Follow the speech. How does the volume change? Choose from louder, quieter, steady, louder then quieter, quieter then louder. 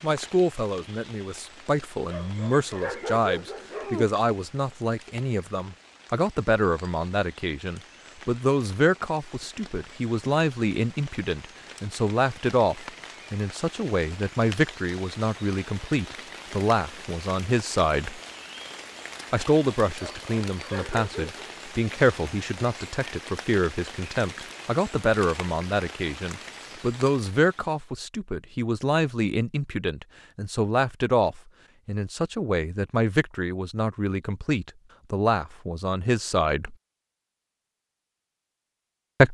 steady.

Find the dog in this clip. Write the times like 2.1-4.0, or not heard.
2.0-4.0, 19.9-21.4.